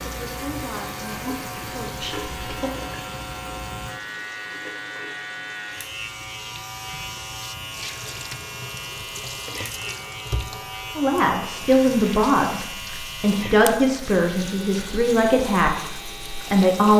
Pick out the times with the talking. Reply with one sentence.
You can hear the talking from 0.0 to 2.7 s and from 10.9 to 16.9 s.